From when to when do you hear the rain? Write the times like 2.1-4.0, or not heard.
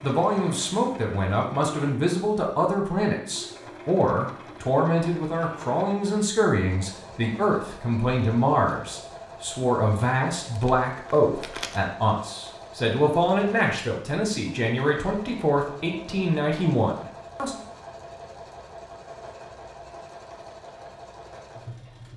not heard.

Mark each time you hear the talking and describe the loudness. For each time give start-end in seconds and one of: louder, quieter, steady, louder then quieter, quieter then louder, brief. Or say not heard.
0.0-17.6 steady.